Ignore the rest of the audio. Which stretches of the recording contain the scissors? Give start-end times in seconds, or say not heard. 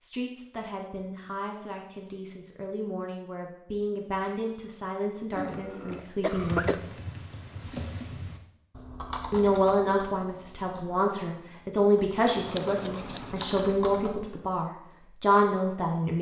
12.2-13.6.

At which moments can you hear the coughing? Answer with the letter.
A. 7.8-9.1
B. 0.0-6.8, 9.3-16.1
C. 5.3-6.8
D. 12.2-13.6
C.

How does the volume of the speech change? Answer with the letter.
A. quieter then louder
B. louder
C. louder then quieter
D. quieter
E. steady
B.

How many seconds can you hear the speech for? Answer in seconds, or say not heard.
14 s.